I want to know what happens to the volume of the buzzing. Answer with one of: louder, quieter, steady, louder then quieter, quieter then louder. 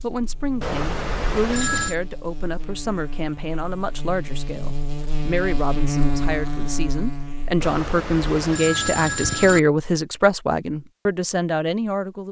louder.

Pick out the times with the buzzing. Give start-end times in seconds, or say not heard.
0.0-7.7.